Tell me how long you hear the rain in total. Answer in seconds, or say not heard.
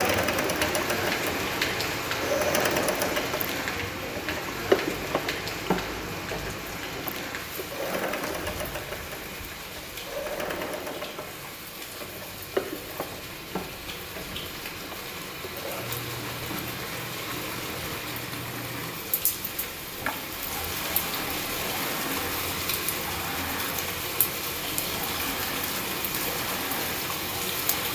28 s.